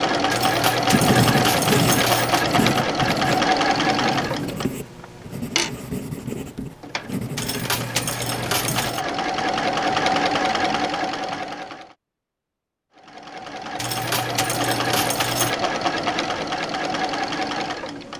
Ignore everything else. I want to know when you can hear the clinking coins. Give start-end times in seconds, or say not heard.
0.3-2.5, 7.3-9.0, 13.8-15.6.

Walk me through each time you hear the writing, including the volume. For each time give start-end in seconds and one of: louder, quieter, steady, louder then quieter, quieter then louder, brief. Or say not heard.
0.8-8.9 quieter.